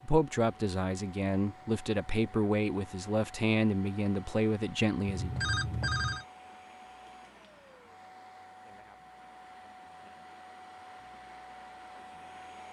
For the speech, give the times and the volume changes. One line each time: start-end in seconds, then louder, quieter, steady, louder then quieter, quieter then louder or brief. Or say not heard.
0.0-5.3 steady.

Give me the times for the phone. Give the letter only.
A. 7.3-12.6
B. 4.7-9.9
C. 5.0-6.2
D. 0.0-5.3
C.